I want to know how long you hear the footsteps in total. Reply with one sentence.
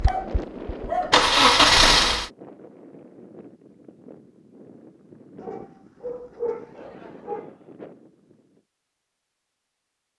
You can't hear the footsteps here.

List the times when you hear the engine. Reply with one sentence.
You can hear the engine from 0.0 to 2.3 s.